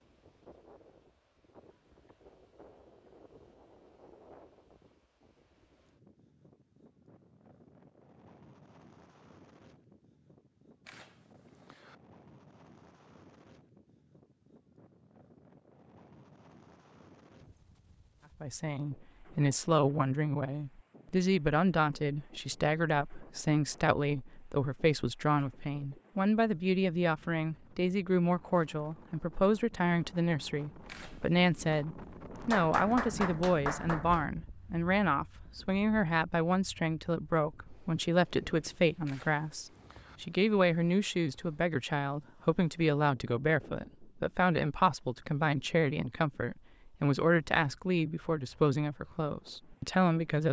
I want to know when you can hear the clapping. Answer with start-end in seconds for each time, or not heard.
32.5-34.2.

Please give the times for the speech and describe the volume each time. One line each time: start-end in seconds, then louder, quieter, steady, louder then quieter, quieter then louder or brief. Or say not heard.
18.4-50.4 steady.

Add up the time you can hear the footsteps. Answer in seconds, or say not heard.
not heard.